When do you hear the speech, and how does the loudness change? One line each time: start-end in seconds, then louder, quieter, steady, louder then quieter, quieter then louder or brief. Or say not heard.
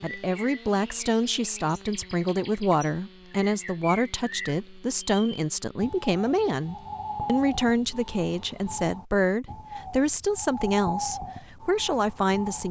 0.0-12.6 steady.